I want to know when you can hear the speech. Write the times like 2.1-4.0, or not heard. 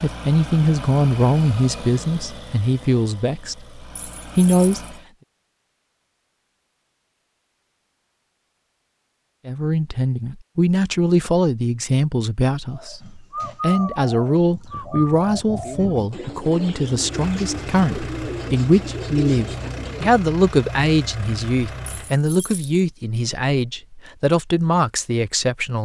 0.0-5.0, 9.4-25.7.